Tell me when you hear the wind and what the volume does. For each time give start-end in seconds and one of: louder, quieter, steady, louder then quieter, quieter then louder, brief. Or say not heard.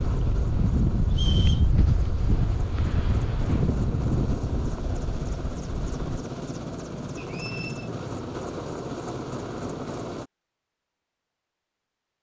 0.0-6.2 quieter.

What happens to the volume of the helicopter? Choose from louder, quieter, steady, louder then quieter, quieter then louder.
louder.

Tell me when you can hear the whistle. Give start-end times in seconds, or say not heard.
1.1-1.6, 7.2-7.9.